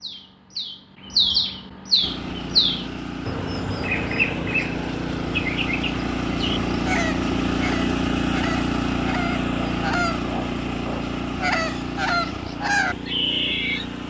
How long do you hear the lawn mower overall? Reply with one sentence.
The lawn mower can be heard for 12 seconds in total.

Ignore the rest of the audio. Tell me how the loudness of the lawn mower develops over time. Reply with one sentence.
The loudness of the lawn mower goes up, then down.